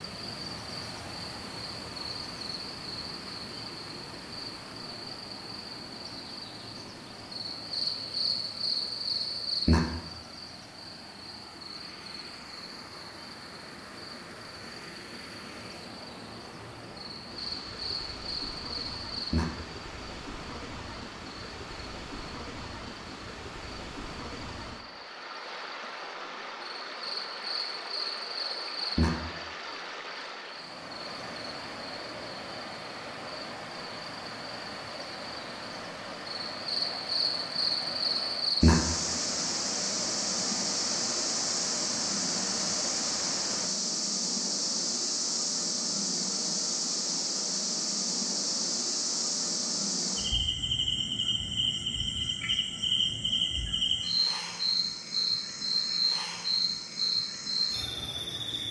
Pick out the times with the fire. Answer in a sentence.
The fire can't be heard in this clip.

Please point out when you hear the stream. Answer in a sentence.
You can hear the stream from 0.0 to 43.7 s.